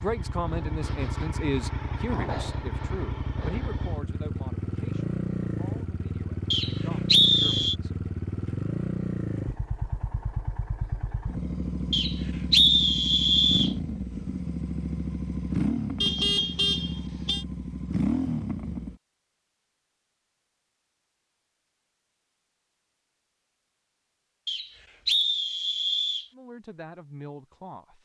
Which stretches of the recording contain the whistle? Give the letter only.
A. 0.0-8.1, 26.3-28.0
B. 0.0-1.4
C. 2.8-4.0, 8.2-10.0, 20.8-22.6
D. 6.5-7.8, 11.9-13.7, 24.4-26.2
D.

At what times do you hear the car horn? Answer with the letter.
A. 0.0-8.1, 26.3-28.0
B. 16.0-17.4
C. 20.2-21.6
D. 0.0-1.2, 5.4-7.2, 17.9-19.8
B.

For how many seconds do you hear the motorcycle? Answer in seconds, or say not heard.
19 s.